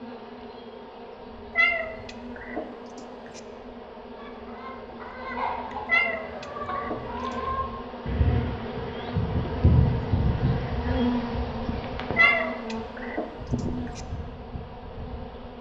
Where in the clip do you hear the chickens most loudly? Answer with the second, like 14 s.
10 s.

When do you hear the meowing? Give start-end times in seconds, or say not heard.
1.6-3.4, 5.8-7.3, 12.2-14.0.